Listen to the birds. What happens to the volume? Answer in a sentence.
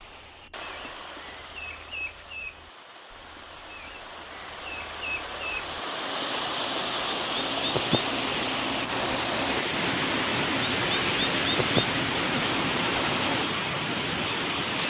The loudness of the birds goes up.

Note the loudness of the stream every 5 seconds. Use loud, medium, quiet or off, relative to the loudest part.
quiet, loud, loud.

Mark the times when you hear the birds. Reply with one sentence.
The birds can be heard from 0.2 to 13.4 s.